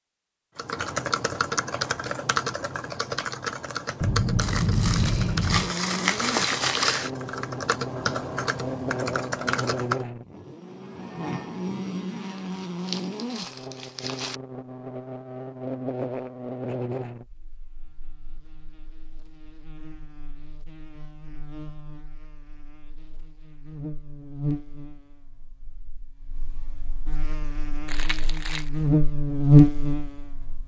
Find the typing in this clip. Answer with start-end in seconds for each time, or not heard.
0.6-10.1.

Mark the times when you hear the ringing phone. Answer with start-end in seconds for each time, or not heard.
4.0-5.8.